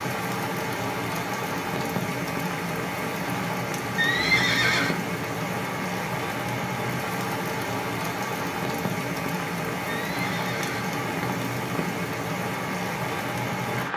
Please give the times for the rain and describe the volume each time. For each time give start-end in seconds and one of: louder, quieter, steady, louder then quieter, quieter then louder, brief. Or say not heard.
0.0-13.9 steady.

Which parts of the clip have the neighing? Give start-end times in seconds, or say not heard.
4.0-5.0, 9.8-10.9.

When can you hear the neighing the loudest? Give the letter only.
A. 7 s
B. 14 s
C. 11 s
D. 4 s
D.